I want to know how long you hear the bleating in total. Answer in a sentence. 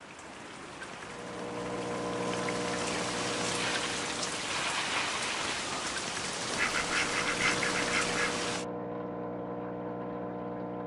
The bleating can't be heard in this clip.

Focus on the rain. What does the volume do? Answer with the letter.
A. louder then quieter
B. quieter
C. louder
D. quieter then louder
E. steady
C.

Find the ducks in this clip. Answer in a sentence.
The ducks can be heard from 6.5 to 8.3 s.